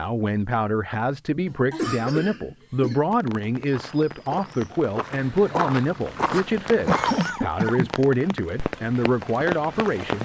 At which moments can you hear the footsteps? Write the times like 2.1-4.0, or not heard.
3.6-7.3.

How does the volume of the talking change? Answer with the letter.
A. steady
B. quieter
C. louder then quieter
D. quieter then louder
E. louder
A.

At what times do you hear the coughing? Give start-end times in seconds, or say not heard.
1.7-3.0, 6.8-8.0.